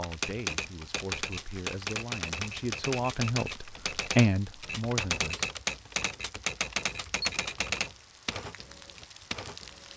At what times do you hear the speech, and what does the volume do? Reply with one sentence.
The speech can be heard from 0.0 to 5.5 s, getting louder.